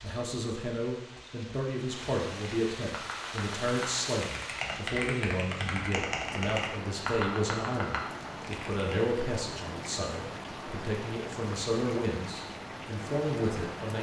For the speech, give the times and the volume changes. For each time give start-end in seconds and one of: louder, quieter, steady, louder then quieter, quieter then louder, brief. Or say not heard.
0.0-13.9 steady.